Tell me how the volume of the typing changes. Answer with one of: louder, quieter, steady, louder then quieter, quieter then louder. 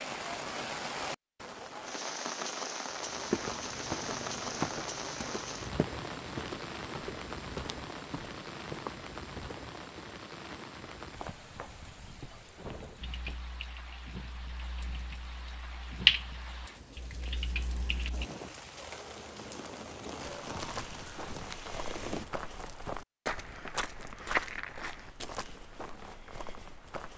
louder then quieter.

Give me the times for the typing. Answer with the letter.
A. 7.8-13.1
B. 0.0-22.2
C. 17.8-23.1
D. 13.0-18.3
D.